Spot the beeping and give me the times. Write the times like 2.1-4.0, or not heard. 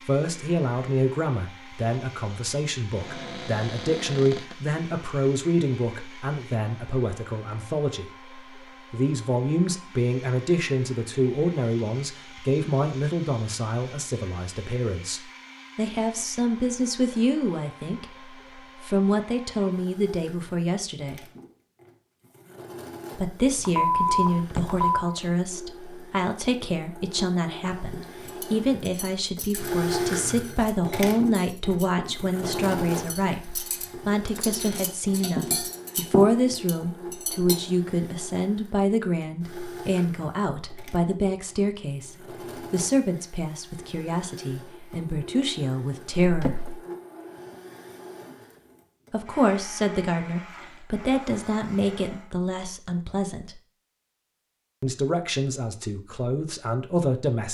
23.6-25.1.